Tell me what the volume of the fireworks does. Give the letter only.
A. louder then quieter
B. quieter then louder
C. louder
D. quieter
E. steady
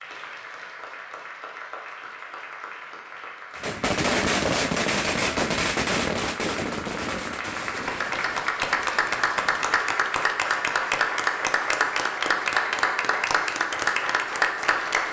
D.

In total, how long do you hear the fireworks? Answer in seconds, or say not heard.
6 s.